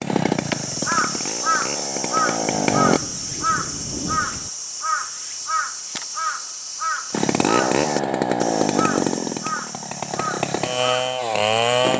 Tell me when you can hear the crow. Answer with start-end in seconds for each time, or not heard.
0.3-11.2.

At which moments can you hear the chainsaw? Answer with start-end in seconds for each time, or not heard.
0.0-3.0, 7.1-11.9.